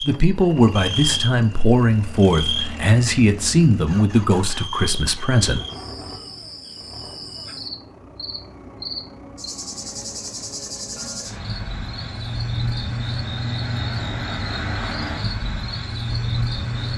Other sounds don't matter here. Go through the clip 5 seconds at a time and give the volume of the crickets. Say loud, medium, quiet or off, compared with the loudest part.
loud, medium, loud, loud.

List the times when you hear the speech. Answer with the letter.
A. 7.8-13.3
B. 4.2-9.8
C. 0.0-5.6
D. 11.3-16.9
C.